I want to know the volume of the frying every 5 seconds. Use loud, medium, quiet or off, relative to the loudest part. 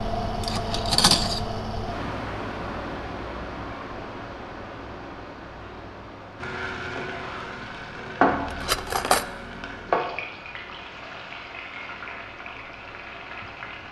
off, loud, medium.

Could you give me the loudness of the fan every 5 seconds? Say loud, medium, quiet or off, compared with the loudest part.
loud, medium, quiet.